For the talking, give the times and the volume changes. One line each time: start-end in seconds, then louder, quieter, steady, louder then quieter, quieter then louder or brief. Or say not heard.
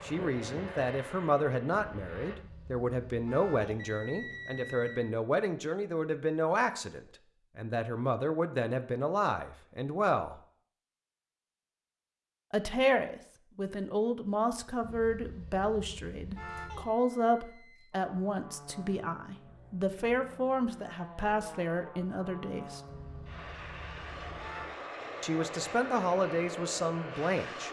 0.0-10.4 steady
12.5-22.8 steady
25.2-27.6 brief.